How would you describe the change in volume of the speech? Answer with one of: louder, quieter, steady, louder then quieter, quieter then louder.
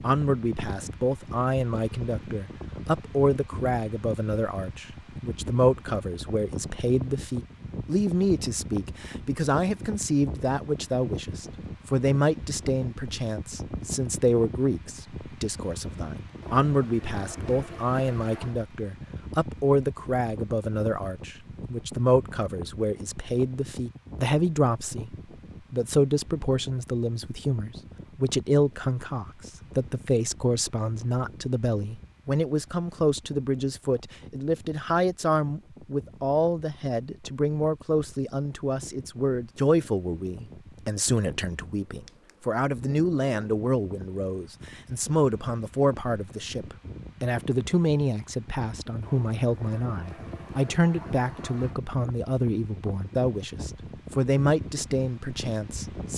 steady.